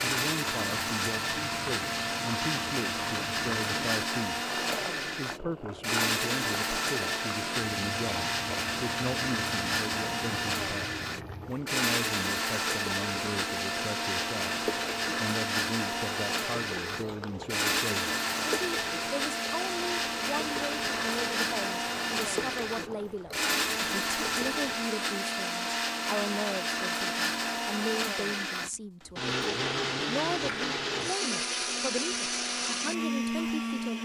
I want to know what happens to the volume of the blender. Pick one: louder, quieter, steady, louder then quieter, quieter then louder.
steady.